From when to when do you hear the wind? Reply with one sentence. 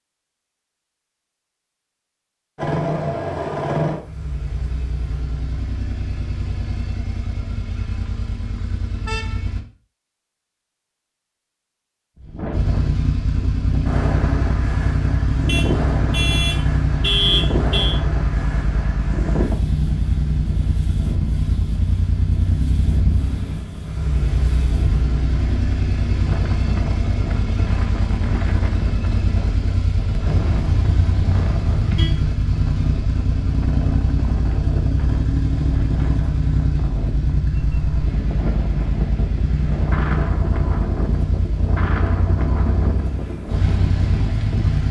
The wind can be heard from 12.2 to 44.8 s.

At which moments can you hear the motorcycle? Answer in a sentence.
The motorcycle can be heard from 2.5 to 9.7 s and from 12.5 to 44.8 s.